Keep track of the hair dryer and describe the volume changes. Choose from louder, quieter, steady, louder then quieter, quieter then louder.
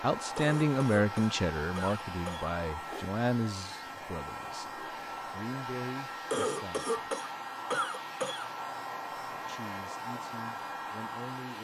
steady.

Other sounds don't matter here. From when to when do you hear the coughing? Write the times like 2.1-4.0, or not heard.
0.3-2.5, 6.3-8.5.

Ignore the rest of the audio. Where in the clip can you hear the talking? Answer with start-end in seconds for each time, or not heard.
0.0-6.9, 9.3-11.5.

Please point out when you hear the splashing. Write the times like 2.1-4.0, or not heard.
not heard.